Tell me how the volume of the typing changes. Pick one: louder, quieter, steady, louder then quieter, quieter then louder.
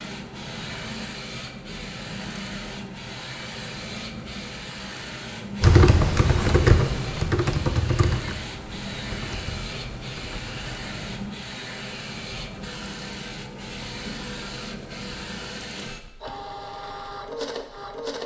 quieter.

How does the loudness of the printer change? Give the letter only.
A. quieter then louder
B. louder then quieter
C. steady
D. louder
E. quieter
C.